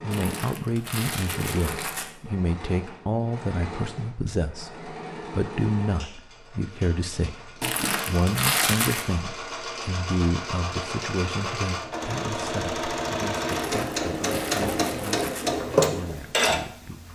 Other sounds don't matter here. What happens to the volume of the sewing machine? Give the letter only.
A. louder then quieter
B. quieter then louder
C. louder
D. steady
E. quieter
C.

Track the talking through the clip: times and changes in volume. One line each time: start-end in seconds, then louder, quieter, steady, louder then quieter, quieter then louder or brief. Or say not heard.
0.0-17.1 quieter.